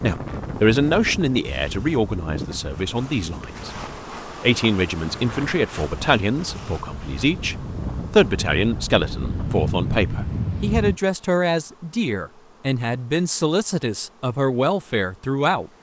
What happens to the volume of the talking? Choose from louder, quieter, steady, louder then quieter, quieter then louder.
steady.